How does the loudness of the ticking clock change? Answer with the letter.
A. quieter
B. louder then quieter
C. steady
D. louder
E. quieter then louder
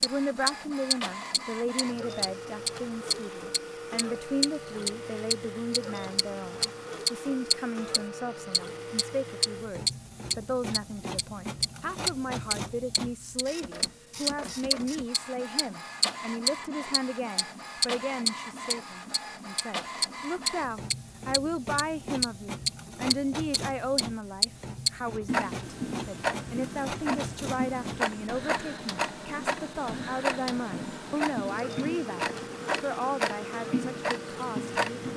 A.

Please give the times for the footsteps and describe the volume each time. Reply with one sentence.
You can't hear the footsteps here.